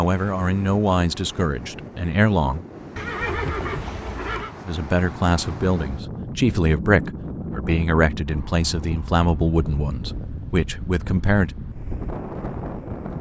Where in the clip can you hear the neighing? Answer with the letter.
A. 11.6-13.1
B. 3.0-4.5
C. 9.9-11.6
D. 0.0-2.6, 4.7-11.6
B.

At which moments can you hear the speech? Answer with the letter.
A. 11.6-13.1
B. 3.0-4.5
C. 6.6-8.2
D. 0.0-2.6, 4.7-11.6
D.